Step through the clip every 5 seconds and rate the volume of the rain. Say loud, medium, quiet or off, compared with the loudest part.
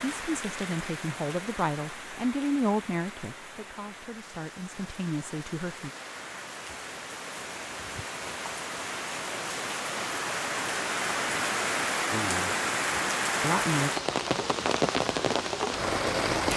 quiet, medium, loud, loud.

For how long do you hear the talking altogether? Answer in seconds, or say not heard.
7 s.